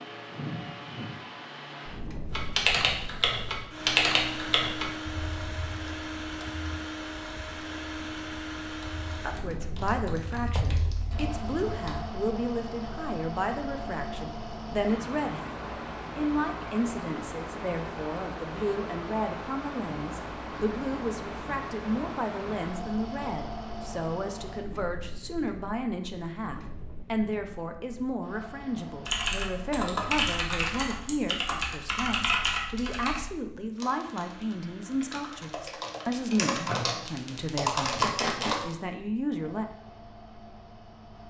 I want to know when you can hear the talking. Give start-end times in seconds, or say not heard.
9.2-39.6.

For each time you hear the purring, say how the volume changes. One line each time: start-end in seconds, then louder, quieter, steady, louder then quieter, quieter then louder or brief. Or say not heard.
not heard.